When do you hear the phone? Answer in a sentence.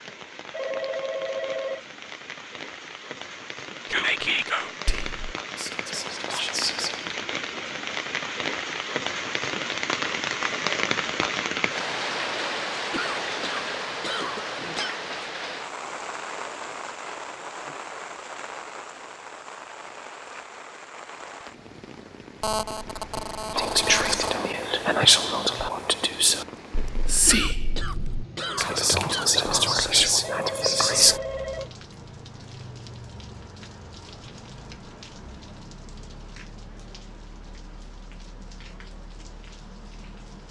The phone can be heard from 0.5 to 1.8 s, from 22.4 to 24.4 s and from 30.2 to 31.8 s.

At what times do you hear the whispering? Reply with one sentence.
The whispering can be heard from 3.9 to 7.2 s and from 23.5 to 31.2 s.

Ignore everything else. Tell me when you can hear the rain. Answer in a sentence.
You can hear the rain from 0.0 to 40.4 s.